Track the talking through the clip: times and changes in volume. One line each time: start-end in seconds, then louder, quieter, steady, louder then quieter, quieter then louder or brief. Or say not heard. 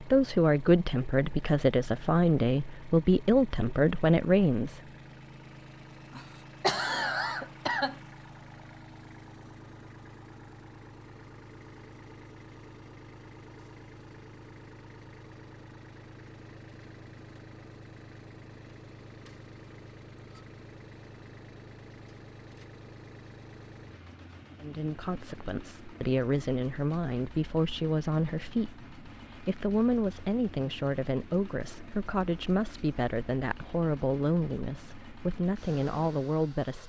0.0-4.8 steady
24.6-36.8 steady.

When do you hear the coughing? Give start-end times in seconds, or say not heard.
6.1-8.0.